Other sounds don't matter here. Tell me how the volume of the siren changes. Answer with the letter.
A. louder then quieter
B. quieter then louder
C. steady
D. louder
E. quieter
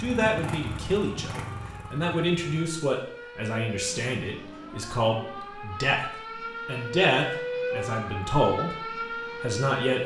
D.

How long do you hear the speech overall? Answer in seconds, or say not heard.
10 s.